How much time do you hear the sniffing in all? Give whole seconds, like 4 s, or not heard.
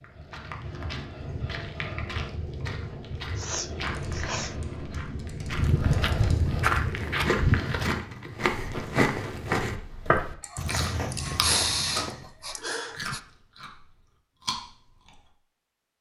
4 s.